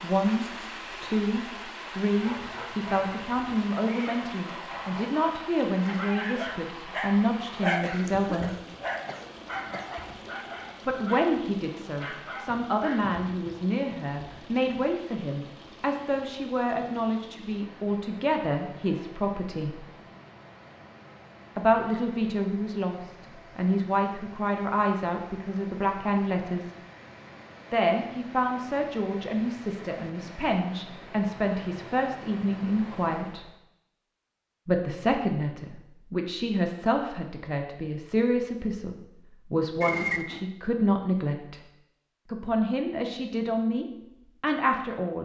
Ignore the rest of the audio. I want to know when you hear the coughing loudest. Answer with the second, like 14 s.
40 s.